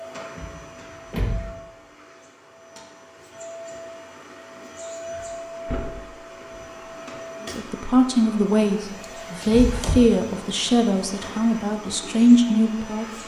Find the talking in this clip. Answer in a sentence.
The talking can be heard from 7.4 to 13.1 s.